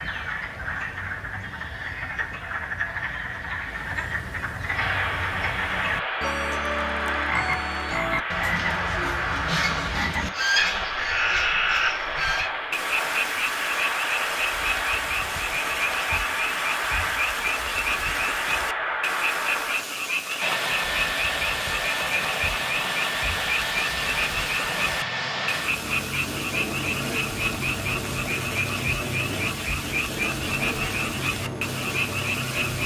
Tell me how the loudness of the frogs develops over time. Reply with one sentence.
The volume of the frogs stays about the same.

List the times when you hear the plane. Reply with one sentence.
The plane can be heard from 4.7 to 32.8 s.